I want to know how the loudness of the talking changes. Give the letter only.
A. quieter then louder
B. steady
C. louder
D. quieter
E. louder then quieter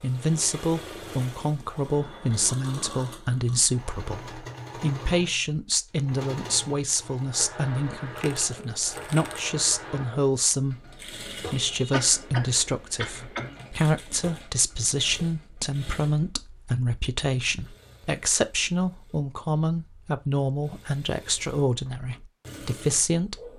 B.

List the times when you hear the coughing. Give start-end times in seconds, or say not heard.
11.5-13.5.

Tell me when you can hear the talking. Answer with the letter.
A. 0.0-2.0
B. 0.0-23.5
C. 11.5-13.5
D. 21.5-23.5
B.